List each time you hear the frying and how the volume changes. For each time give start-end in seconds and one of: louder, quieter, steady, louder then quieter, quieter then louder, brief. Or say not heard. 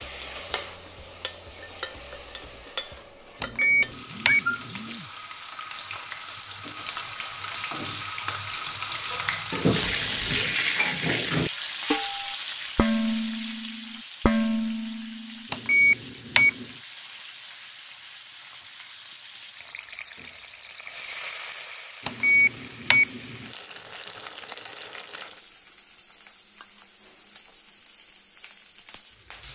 0.0-29.5 louder then quieter.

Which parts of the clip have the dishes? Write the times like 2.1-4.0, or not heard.
9.1-15.4.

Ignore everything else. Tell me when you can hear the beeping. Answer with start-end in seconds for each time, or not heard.
3.4-4.8, 15.5-16.6, 22.1-23.4.